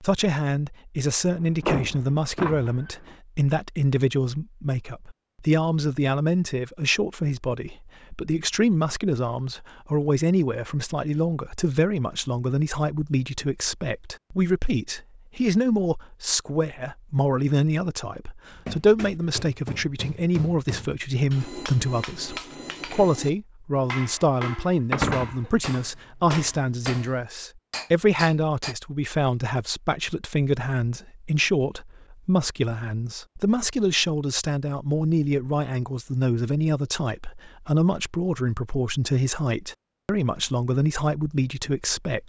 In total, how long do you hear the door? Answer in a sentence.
You can hear the door for 2 seconds altogether.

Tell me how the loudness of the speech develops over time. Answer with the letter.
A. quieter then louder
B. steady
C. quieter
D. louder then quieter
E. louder
B.